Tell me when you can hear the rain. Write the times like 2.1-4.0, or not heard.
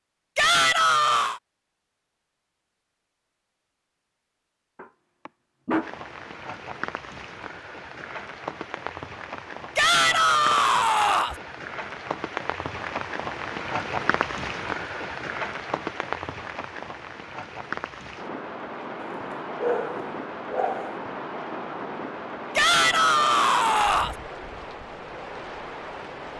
5.8-26.3.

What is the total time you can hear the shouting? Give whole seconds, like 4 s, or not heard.
4 s.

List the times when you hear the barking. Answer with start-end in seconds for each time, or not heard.
4.8-5.9, 19.1-21.0.